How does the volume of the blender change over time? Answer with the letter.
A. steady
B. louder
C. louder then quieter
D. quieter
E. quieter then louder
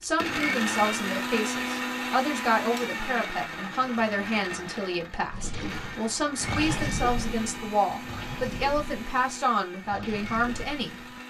D.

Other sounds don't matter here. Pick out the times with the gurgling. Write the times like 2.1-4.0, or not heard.
5.3-11.2.